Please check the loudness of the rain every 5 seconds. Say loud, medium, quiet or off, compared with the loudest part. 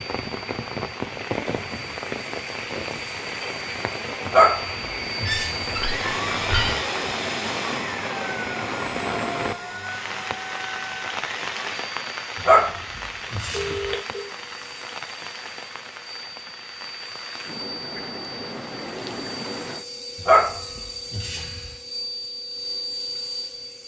loud, loud, loud, medium, off.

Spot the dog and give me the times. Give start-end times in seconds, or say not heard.
4.2-5.7, 12.4-13.9, 20.2-21.7.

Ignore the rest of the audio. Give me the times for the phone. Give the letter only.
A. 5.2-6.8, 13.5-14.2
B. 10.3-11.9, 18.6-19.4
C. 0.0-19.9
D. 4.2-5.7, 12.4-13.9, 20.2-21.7
A.